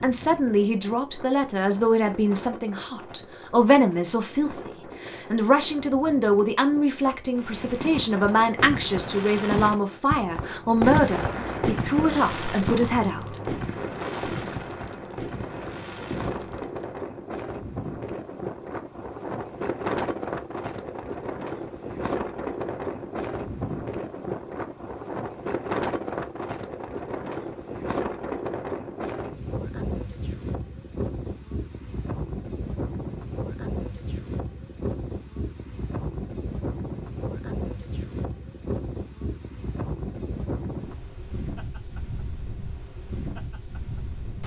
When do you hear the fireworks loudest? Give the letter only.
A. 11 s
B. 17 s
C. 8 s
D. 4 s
A.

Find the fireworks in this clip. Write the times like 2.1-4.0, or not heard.
7.3-16.9.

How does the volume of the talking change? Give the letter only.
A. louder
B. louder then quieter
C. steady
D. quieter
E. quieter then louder
C.